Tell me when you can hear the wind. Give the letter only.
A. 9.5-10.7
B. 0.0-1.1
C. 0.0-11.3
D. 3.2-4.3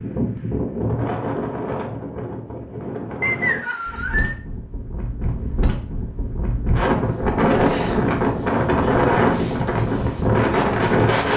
C.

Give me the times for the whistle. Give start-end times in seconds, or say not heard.
3.2-4.3.